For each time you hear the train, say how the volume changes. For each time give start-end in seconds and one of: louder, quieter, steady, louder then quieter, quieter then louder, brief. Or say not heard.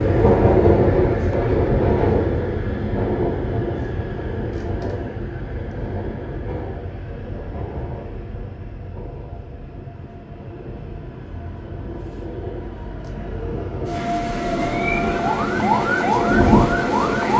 0.0-17.3 quieter then louder.